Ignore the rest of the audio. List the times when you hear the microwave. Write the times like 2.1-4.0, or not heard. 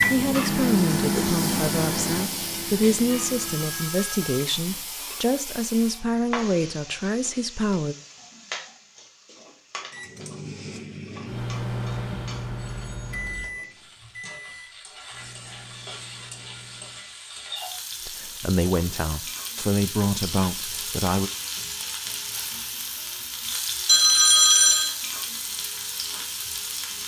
0.0-4.0, 9.9-17.2.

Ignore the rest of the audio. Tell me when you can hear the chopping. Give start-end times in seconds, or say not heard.
not heard.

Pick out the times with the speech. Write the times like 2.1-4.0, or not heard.
0.1-8.0, 18.1-21.3.